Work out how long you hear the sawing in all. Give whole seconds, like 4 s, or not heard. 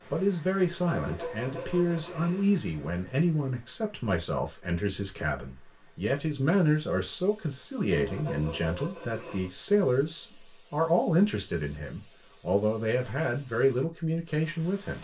3 s.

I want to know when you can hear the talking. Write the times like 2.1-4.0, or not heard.
0.1-14.9.